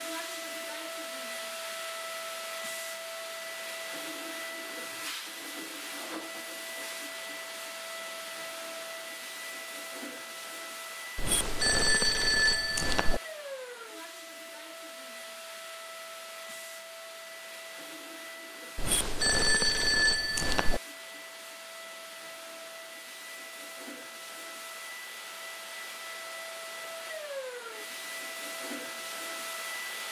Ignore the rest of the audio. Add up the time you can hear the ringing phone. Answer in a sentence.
The ringing phone can be heard for 4 seconds in total.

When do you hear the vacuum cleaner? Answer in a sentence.
The vacuum cleaner can be heard from 0.0 to 30.0 s.